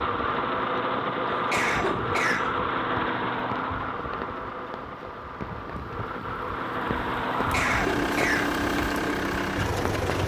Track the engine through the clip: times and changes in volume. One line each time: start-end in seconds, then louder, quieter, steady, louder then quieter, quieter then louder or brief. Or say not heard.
0.0-10.2 quieter then louder.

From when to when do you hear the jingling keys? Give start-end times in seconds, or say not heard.
not heard.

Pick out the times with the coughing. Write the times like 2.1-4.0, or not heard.
1.3-2.6, 7.3-8.5.